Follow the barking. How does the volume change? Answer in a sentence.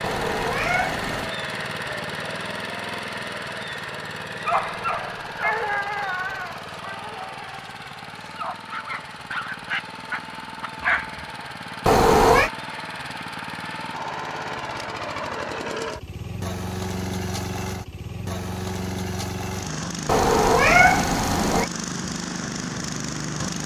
The volume of the barking goes down, then up.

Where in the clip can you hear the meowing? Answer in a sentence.
You can hear the meowing from 0.0 to 1.3 s, from 11.8 to 12.5 s and from 20.1 to 21.7 s.